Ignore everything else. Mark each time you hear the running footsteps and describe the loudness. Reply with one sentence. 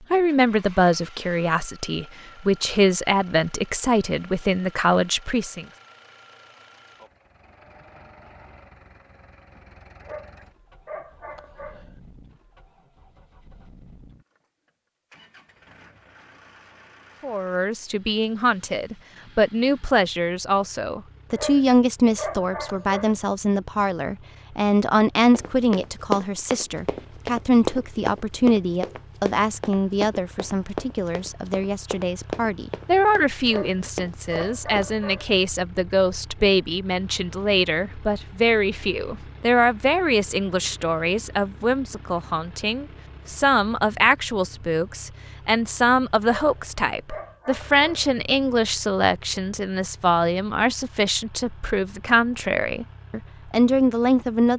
The running footsteps can be heard from 25.3 to 35.0 s, getting quieter.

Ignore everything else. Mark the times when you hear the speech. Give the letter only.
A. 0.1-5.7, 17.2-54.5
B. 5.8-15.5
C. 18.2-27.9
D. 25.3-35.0
A.